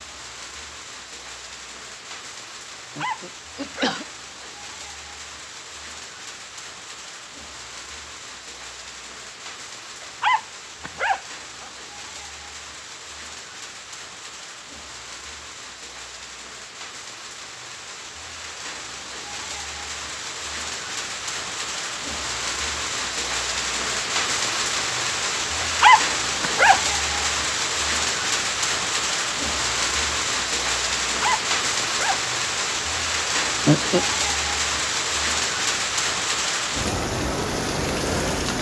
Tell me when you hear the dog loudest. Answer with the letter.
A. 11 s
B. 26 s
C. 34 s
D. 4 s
B.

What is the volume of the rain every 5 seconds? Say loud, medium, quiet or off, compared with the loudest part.
quiet, quiet, quiet, quiet, loud, loud, loud, loud.